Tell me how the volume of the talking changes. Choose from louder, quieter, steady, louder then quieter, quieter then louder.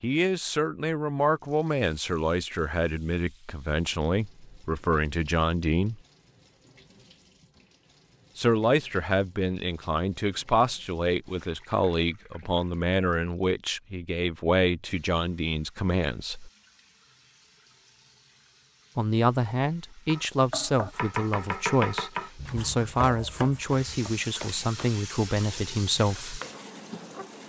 steady.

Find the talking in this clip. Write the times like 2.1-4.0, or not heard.
0.0-6.0, 8.3-16.5, 18.9-26.4.